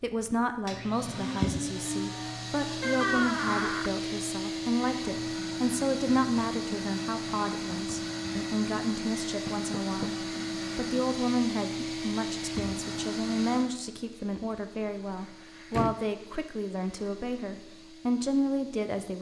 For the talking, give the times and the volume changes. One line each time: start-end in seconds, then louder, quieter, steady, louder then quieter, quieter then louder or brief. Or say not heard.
0.0-19.1 steady.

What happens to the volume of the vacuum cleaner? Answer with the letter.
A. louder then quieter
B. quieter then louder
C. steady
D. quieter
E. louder
D.